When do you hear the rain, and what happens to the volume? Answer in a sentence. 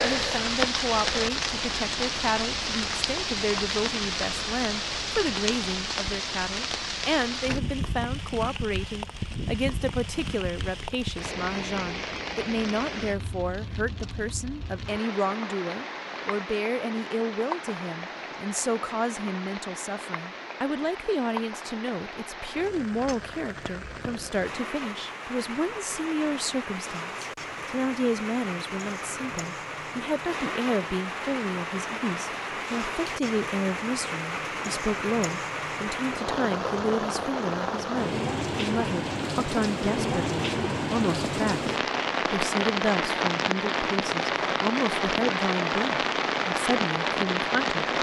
You can hear the rain from 0.0 to 47.9 s, getting quieter then louder.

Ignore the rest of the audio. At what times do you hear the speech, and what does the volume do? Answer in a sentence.
The speech can be heard from 0.0 to 47.8 s, at a steady volume.